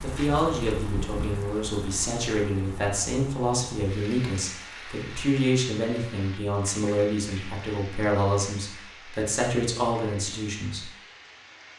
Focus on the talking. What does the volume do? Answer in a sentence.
The loudness of the talking stays about the same.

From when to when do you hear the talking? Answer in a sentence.
You can hear the talking from 0.0 to 10.9 s.